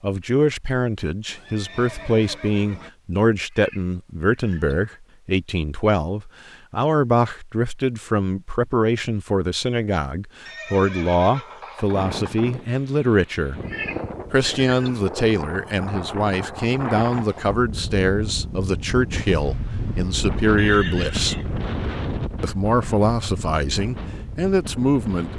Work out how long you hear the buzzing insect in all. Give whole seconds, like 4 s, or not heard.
not heard.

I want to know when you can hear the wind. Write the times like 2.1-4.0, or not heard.
11.9-25.3.